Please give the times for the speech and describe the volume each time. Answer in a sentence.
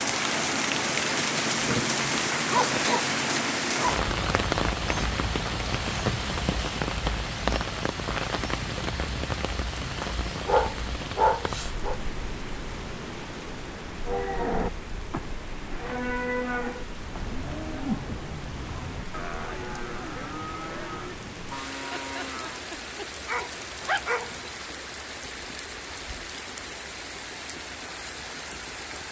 The speech can't be heard in this clip.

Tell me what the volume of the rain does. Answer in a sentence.
The volume of the rain goes down.